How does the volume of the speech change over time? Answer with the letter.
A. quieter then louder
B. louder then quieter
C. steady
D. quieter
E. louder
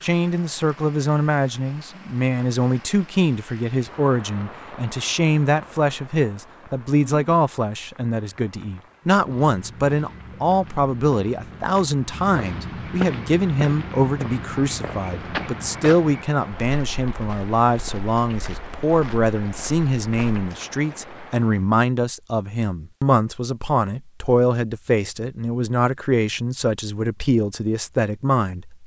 C.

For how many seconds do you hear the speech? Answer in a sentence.
The speech can be heard for 29 seconds in total.